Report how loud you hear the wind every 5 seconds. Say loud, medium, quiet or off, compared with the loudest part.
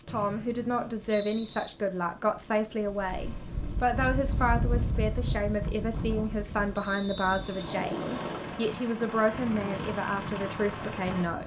loud, loud, medium.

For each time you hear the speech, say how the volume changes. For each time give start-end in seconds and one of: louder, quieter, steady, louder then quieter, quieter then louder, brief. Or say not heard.
0.0-11.4 steady.